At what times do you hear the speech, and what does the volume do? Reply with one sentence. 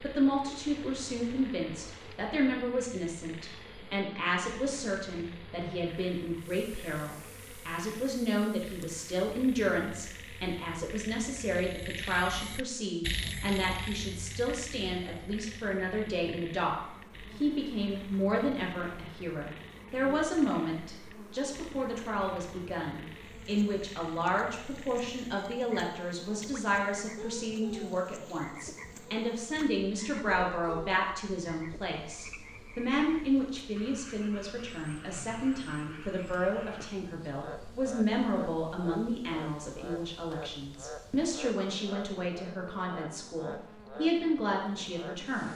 The speech can be heard from 0.0 to 45.5 s, at a steady volume.